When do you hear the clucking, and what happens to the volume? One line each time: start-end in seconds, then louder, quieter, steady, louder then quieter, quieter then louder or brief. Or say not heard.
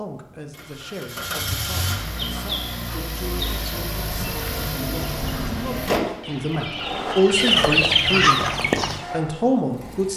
2.1-9.1 louder.